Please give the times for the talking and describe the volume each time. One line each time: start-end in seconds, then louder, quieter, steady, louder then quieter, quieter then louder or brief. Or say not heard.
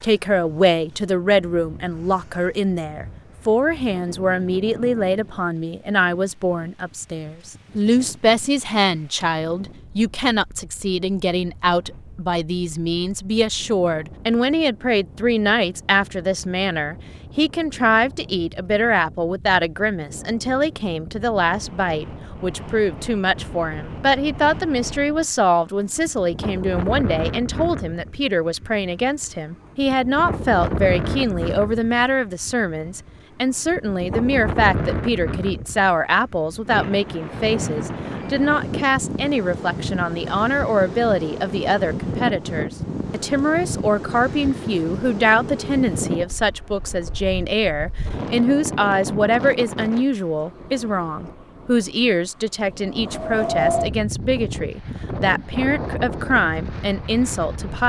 0.0-57.8 steady.